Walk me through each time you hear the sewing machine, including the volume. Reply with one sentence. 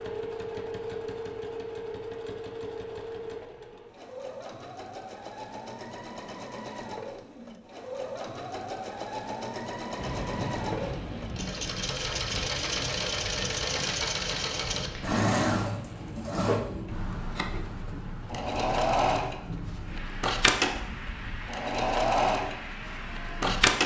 You can hear the sewing machine from 0.0 to 23.8 s, getting louder.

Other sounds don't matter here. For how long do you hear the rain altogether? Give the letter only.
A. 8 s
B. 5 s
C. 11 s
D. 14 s
D.